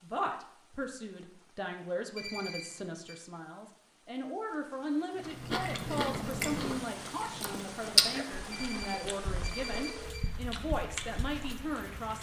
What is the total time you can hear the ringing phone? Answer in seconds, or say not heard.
3 s.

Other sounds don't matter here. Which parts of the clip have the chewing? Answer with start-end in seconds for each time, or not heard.
5.2-11.8.